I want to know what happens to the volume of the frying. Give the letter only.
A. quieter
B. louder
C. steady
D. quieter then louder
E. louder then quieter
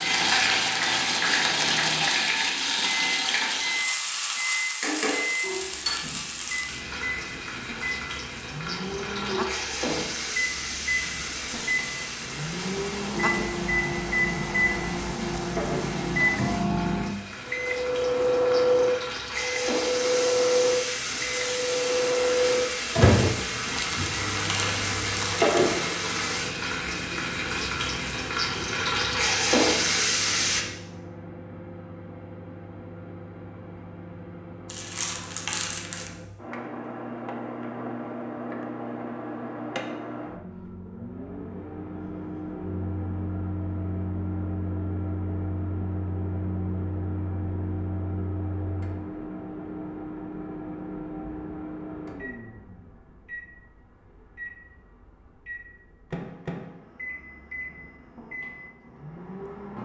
D.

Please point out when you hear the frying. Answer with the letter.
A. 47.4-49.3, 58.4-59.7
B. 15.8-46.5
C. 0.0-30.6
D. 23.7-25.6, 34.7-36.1
C.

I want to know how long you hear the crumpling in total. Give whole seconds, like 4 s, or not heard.
3 s.